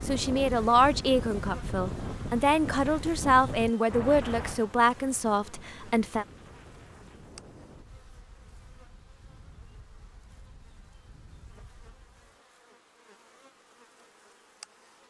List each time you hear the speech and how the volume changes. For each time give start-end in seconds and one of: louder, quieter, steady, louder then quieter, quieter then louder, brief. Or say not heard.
0.1-6.2 steady.